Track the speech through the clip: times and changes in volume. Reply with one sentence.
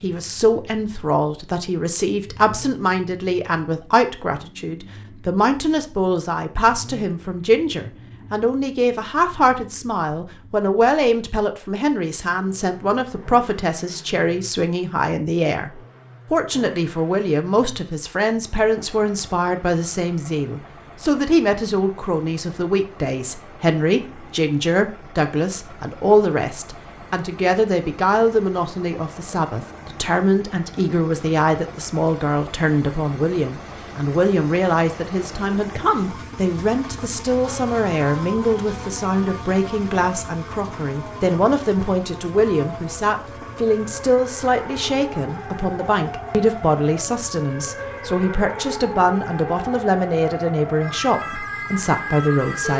You can hear the speech from 0.0 to 52.7 s, at a steady volume.